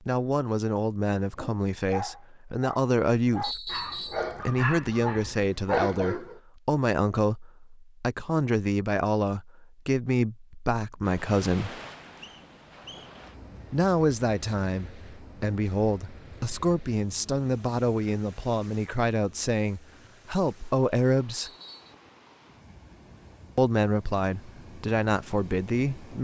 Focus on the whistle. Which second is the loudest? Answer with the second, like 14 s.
4 s.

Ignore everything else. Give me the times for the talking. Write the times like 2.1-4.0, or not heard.
0.1-11.8, 13.7-21.5, 23.6-26.1.